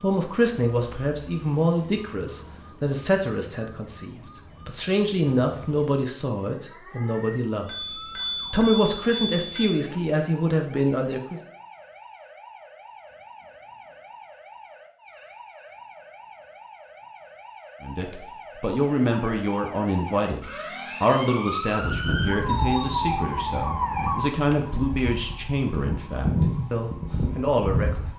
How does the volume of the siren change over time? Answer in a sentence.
The loudness of the siren goes up.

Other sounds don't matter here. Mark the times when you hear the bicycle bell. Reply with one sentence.
You can hear the bicycle bell from 7.7 to 9.7 s and from 21.8 to 23.2 s.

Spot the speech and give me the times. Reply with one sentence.
The speech can be heard from 0.0 to 11.4 s and from 17.8 to 28.1 s.